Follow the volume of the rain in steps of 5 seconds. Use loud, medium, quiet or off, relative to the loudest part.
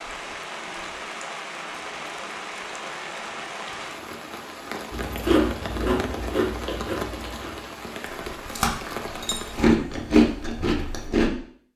loud, loud, off.